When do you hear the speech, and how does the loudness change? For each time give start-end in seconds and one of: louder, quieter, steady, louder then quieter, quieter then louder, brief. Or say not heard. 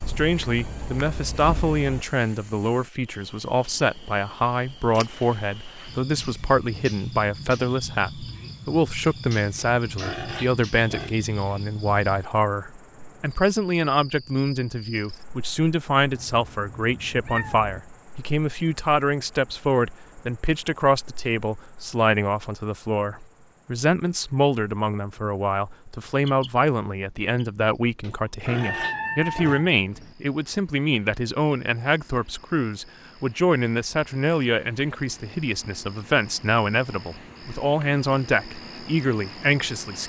0.1-40.0 steady.